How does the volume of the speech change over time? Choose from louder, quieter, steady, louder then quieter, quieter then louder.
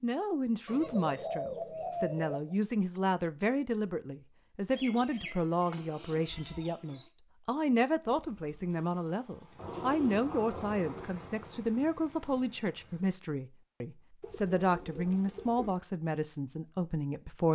steady.